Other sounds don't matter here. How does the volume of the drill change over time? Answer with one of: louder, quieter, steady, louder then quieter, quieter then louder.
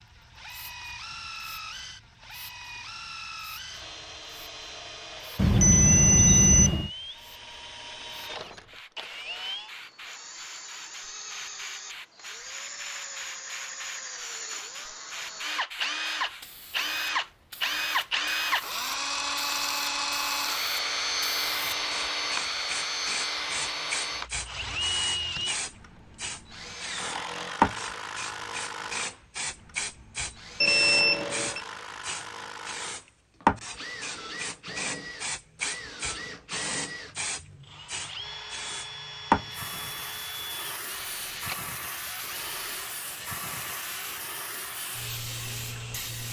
louder then quieter.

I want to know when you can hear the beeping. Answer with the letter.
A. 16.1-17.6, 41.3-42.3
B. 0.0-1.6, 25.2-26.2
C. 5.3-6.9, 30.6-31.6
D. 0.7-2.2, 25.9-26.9
C.